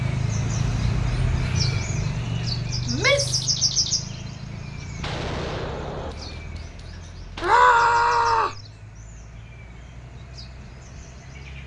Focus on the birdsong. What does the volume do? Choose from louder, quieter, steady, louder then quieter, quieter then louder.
quieter.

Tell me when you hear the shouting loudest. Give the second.
8 s.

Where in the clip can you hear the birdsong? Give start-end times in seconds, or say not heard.
0.0-11.6.